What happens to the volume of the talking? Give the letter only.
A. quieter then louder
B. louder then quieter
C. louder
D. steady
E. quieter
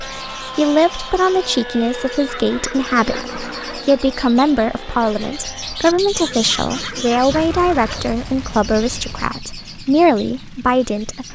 D.